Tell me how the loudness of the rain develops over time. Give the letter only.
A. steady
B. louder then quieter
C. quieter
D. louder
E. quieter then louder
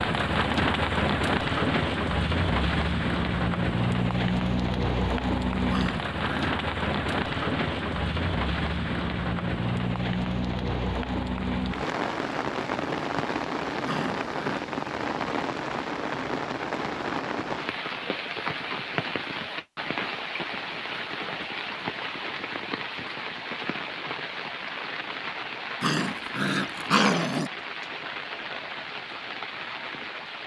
C.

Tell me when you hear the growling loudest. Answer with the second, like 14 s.
27 s.